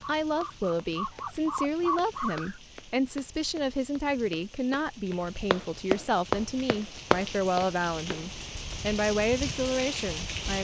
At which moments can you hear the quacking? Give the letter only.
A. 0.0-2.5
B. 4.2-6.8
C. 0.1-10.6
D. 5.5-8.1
A.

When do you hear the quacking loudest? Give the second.
2 s.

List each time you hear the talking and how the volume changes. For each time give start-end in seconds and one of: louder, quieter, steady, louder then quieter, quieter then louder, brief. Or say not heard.
0.1-10.6 steady.